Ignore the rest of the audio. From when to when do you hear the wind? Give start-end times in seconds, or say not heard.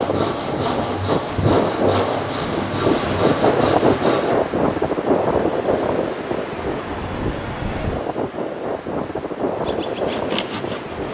0.0-11.0.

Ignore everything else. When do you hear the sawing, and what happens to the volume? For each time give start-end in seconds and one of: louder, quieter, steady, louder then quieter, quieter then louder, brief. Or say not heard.
0.0-4.3 steady
9.6-11.0 brief.